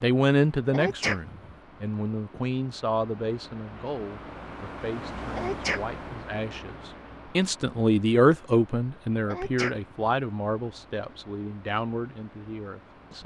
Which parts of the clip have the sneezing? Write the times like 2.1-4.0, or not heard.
0.7-1.6, 5.3-6.2, 9.2-10.1.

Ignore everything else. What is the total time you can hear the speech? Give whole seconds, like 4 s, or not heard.
13 s.